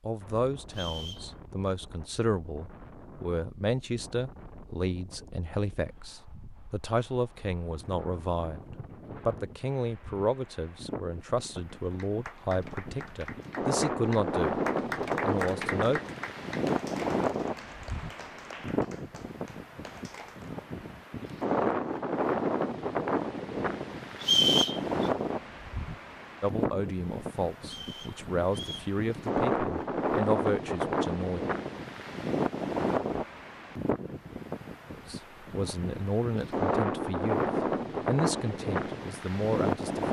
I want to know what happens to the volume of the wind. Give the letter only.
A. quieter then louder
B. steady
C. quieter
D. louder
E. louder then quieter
D.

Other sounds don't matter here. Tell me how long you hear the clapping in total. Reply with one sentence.
You can hear the clapping for 9 seconds altogether.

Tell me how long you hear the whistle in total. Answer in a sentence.
You can hear the whistle for 3 seconds altogether.